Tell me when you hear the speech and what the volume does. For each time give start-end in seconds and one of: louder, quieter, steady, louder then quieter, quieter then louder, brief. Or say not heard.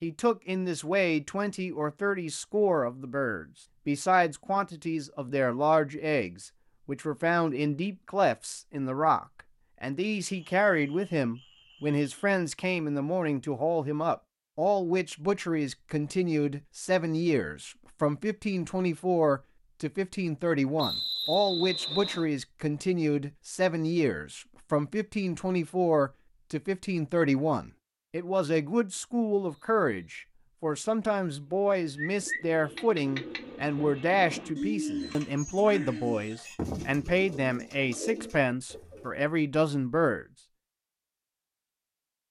0.0-40.2 steady.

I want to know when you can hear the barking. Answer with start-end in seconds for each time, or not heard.
not heard.